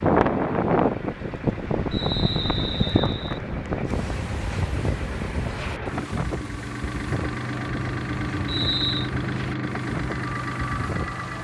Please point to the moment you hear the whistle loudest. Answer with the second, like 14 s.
9 s.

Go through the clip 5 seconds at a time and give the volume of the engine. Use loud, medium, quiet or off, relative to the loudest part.
medium, loud, loud.